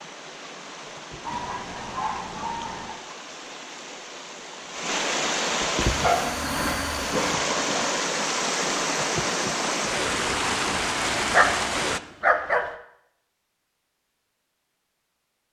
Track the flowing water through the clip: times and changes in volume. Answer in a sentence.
The flowing water can be heard from 0.0 to 12.0 s, getting louder.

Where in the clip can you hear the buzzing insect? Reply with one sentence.
The buzzing insect can be heard from 6.0 to 7.3 s.